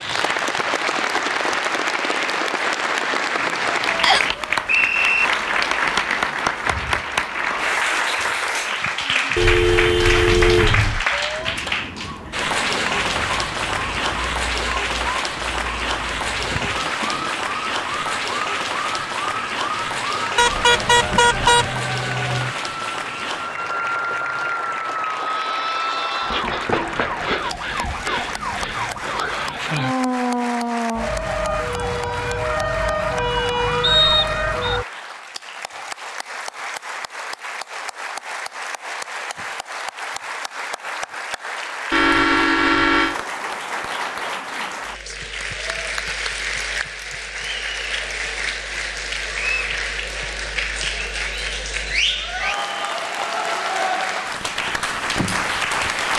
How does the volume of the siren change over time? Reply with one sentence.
The volume of the siren goes up.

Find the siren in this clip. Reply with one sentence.
You can hear the siren from 11.1 to 34.9 s.